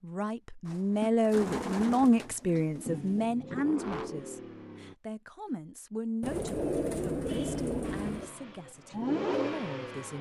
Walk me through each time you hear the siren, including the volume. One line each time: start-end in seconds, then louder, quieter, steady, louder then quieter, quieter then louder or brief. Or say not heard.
not heard.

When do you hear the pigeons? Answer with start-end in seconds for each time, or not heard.
0.7-3.3, 6.2-8.3.